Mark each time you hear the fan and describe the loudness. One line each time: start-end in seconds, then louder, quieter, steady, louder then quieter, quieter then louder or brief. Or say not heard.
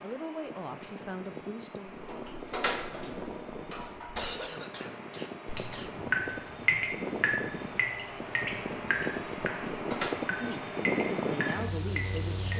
0.0-12.5 louder.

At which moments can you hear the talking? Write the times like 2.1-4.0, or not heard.
0.0-2.0, 10.3-12.5.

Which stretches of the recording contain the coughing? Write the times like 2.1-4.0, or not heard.
4.2-6.0.